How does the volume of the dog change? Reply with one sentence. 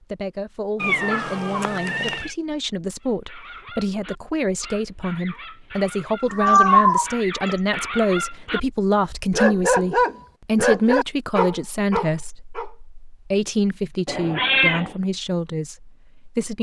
The volume of the dog goes up.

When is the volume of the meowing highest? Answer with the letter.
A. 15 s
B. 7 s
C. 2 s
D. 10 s
B.